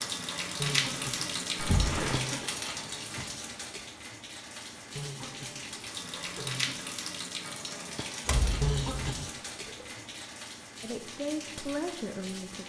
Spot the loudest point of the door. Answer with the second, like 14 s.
2 s.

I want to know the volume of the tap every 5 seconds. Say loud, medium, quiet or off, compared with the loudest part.
loud, loud, medium.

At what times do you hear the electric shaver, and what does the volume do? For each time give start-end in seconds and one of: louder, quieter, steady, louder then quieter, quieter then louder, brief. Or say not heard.
not heard.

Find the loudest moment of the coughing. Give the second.
9 s.